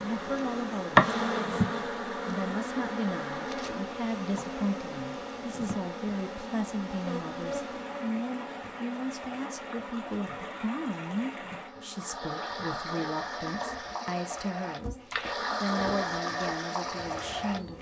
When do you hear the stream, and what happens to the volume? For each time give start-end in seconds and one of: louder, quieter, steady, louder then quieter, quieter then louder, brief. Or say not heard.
0.0-17.7 louder.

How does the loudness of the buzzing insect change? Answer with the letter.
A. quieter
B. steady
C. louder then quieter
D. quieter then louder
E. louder
A.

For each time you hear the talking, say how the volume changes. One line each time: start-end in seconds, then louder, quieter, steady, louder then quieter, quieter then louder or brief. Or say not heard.
0.0-17.7 steady.